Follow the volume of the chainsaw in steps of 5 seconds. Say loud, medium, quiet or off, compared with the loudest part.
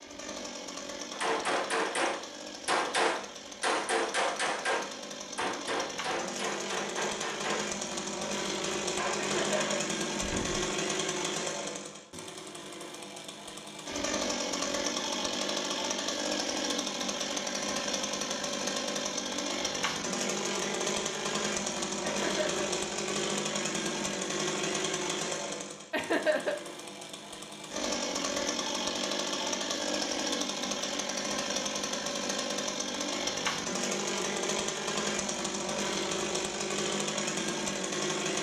medium, loud, loud, loud, loud, loud, loud, loud.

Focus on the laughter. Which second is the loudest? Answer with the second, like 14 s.
26 s.